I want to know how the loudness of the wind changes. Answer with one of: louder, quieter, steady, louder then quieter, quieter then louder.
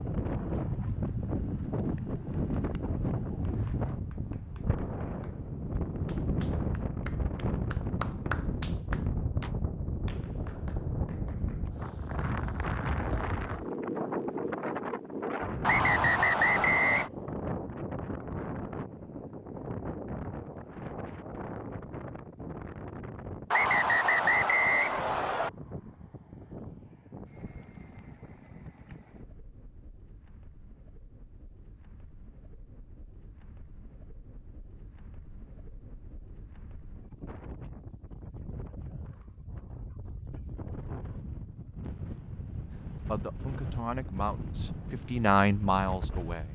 quieter then louder.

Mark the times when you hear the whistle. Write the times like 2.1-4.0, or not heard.
15.6-17.1, 23.5-25.5.